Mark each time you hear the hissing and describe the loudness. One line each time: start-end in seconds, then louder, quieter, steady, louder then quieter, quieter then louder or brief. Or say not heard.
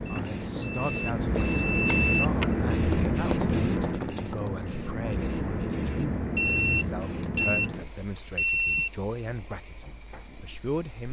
0.0-11.0 quieter.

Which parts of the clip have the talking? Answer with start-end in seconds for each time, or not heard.
0.1-11.0.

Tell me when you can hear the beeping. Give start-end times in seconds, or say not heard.
0.1-2.3, 6.3-8.9.